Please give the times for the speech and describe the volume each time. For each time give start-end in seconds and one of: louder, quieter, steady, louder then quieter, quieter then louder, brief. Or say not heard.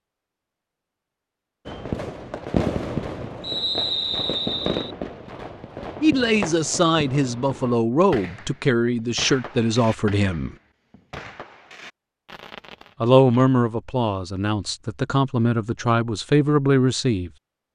6.0-10.6 steady
13.0-17.3 quieter then louder.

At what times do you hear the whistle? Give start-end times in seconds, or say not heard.
3.4-5.0.